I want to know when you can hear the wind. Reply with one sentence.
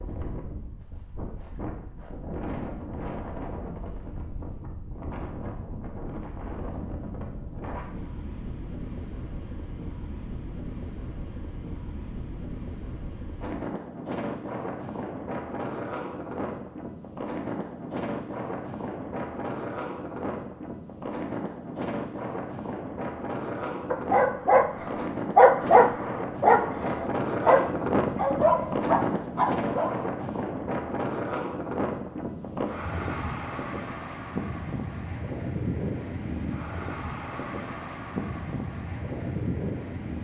You can hear the wind from 0.0 to 40.2 s.